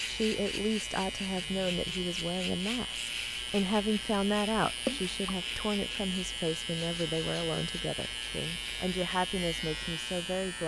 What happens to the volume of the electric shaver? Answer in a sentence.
The volume of the electric shaver stays about the same.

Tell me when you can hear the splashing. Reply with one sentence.
You can hear the splashing from 4.8 to 5.5 s.